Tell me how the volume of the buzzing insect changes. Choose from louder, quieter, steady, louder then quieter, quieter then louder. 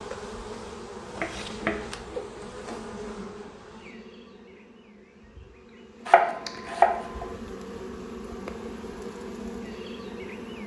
quieter then louder.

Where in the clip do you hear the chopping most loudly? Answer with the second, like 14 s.
7 s.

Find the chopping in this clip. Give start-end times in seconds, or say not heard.
1.2-2.2, 6.0-7.2.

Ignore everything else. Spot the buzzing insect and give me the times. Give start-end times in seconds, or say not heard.
0.0-10.6.